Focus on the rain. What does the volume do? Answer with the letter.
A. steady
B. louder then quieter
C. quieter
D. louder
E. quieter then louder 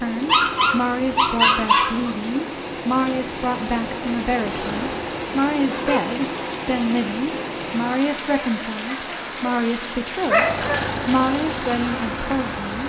A.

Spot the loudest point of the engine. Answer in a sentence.
The loudest moment of the engine is at 11 seconds.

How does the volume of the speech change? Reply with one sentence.
The loudness of the speech stays about the same.